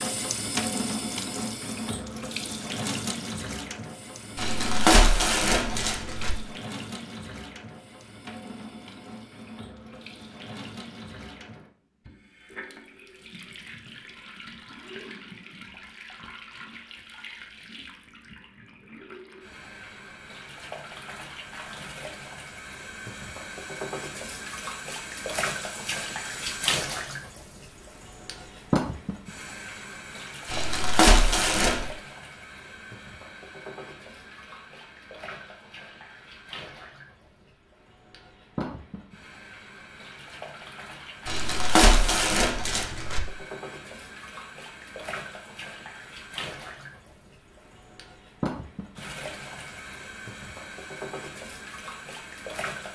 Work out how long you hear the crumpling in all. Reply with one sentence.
You can hear the crumpling for 5 seconds altogether.